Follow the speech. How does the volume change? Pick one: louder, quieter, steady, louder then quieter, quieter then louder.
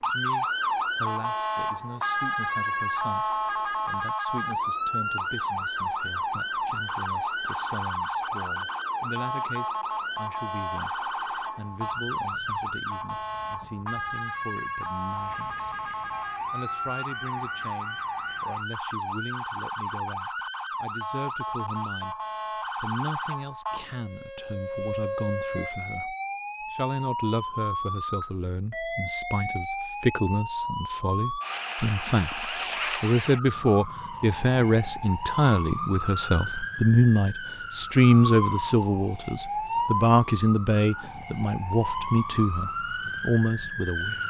louder.